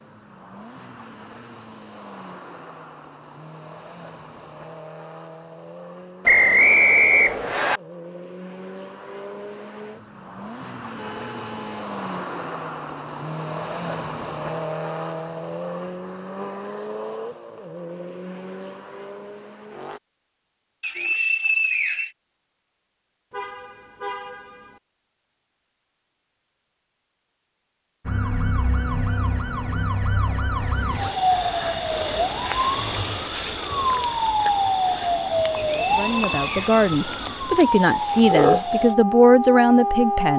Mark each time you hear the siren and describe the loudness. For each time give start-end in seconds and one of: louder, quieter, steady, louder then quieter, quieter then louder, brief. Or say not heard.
28.1-40.3 louder.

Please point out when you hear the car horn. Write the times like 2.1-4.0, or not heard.
10.9-11.9, 23.3-24.8.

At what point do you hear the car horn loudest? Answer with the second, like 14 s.
24 s.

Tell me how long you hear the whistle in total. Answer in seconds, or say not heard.
4 s.